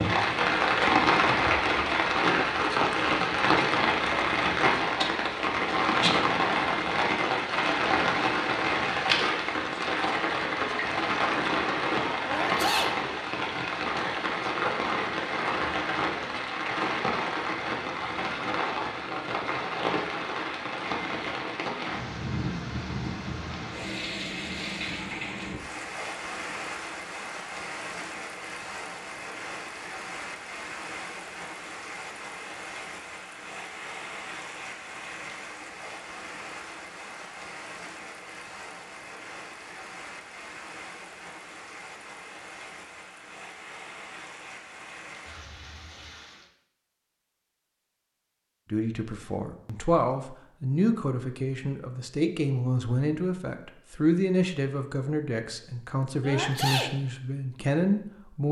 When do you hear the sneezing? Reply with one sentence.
The sneezing can be heard from 12.2 to 13.0 s and from 56.2 to 57.0 s.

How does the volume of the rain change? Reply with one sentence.
The volume of the rain goes down.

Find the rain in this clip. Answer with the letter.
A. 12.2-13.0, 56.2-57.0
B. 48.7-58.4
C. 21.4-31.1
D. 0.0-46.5
D.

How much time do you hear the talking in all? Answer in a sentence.
The talking can be heard for 10 seconds in total.